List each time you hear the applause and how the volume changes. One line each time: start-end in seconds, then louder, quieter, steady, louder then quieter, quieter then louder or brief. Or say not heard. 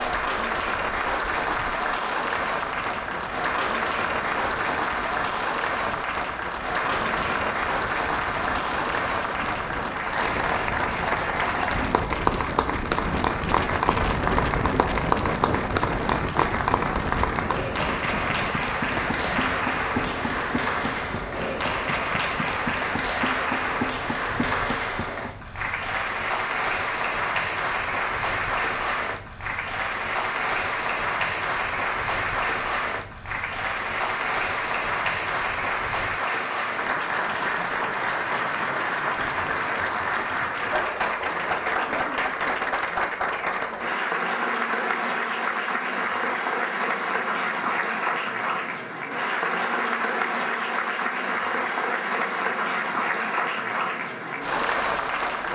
0.0-55.5 steady.